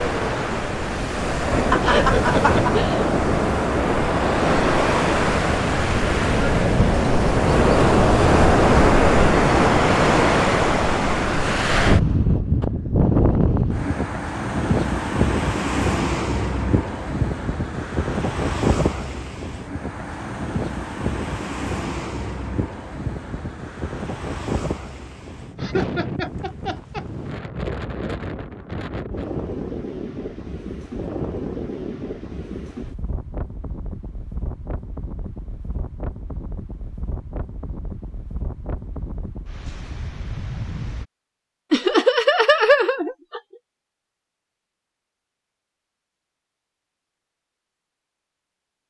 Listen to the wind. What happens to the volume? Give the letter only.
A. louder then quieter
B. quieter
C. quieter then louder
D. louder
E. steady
B.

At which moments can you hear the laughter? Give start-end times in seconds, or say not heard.
1.7-3.1, 25.6-27.1, 41.7-43.4.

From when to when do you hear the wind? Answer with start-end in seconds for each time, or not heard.
0.0-41.0.